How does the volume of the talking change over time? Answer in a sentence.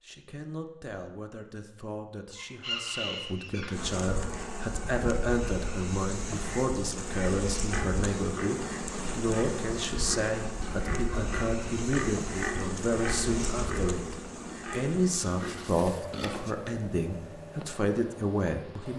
The volume of the talking goes up.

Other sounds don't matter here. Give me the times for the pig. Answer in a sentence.
You can hear the pig from 7.5 to 16.6 s.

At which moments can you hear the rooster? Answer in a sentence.
You can hear the rooster from 2.4 to 3.8 s.